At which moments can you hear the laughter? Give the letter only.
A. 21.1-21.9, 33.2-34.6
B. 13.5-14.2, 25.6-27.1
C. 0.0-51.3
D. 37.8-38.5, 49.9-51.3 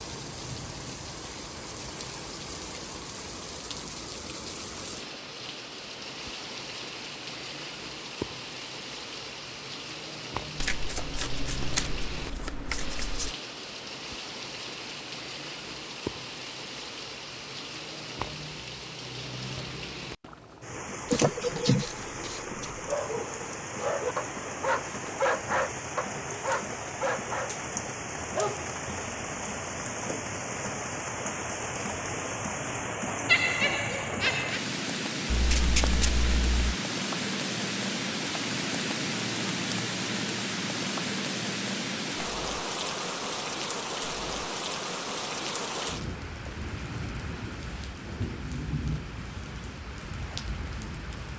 A.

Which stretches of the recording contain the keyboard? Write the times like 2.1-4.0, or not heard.
not heard.